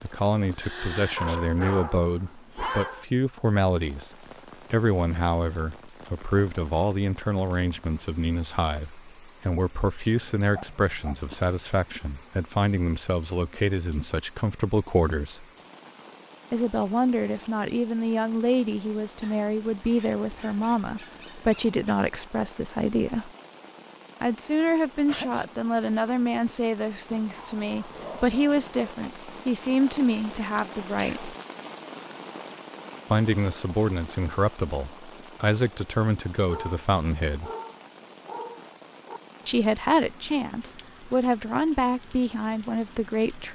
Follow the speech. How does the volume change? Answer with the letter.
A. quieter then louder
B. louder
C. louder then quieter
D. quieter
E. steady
E.